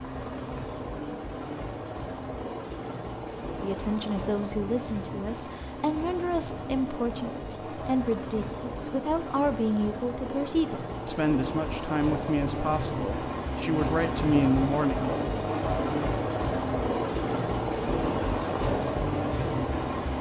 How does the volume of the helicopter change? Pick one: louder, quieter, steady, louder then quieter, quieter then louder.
louder.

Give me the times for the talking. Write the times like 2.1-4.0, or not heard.
3.6-15.0.